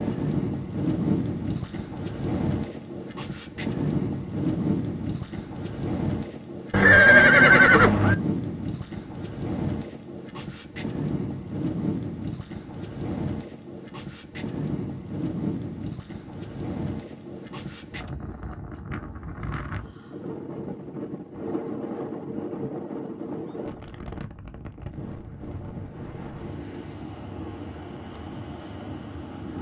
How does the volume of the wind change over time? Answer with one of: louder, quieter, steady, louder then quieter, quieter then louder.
quieter.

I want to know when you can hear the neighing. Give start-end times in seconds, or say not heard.
6.7-8.2.